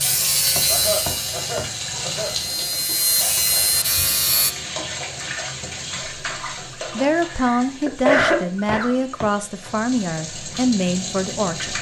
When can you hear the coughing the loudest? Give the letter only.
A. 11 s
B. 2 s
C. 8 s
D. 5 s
C.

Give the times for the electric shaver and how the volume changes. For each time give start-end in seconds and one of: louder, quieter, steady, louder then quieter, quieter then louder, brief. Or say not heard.
0.0-4.5 quieter then louder.